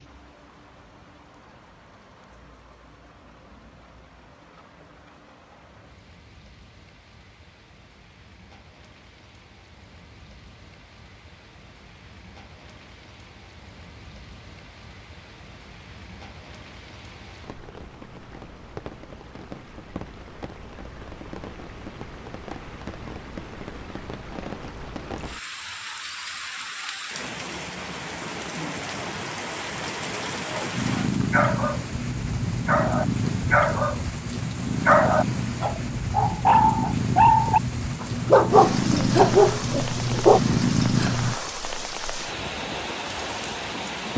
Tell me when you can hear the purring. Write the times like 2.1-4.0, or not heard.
30.8-41.4.